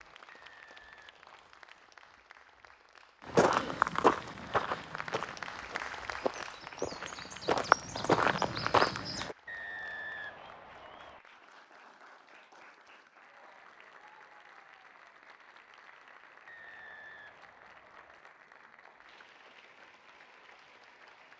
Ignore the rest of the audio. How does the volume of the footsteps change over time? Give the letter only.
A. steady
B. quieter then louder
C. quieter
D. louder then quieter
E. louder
B.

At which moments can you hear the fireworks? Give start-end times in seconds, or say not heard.
not heard.